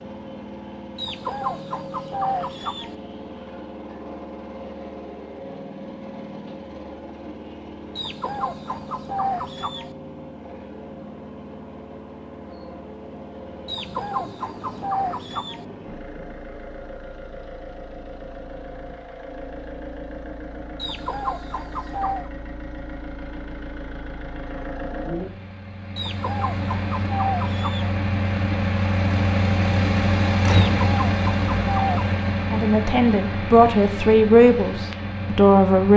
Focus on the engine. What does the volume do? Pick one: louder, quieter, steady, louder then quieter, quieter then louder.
louder.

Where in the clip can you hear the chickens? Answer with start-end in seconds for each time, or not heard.
0.9-3.0, 8.0-9.9, 13.7-15.7, 20.8-22.3, 25.9-27.9, 30.5-32.1.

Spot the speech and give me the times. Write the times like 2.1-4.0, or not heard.
32.5-35.9.